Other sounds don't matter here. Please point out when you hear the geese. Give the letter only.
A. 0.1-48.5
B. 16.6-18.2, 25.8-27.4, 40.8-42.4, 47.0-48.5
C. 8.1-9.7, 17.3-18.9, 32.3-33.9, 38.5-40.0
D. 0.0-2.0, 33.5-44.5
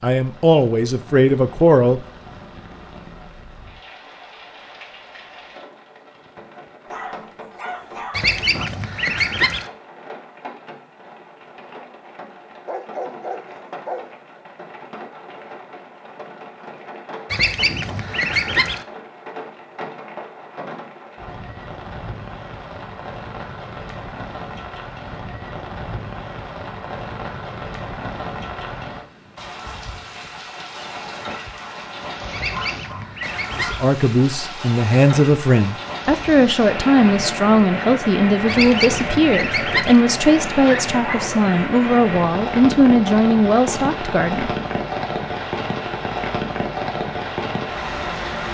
C.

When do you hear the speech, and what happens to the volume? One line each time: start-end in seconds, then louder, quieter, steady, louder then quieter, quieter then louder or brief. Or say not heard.
0.0-2.0 brief
33.5-44.5 steady.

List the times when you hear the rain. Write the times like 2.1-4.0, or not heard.
0.1-48.5.